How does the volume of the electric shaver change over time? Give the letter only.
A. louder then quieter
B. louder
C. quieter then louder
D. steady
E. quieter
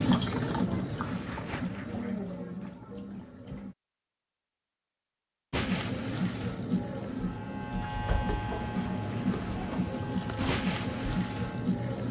E.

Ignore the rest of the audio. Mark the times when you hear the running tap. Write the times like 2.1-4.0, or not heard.
0.0-3.8, 5.5-12.0.